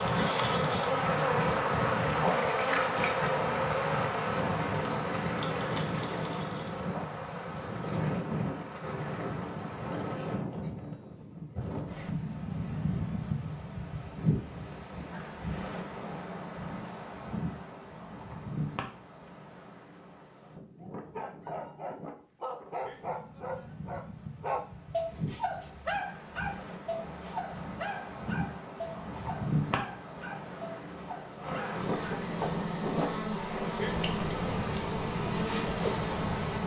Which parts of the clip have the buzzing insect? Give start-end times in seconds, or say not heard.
0.0-10.4, 31.4-36.6.